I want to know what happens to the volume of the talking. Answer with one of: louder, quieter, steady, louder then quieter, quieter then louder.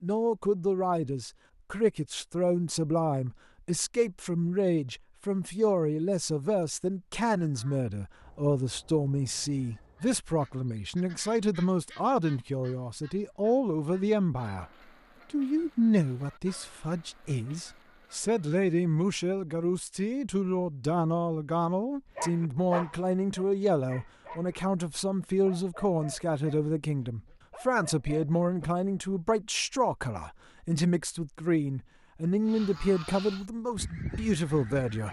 steady.